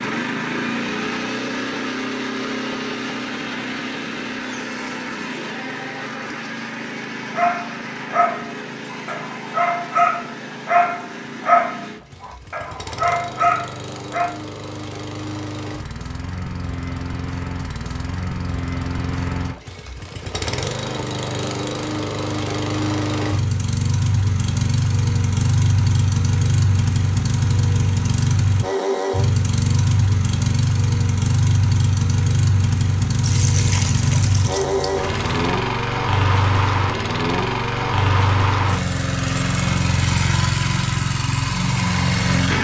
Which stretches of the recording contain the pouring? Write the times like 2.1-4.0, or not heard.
33.2-35.4.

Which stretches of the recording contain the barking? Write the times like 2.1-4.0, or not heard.
7.3-14.3.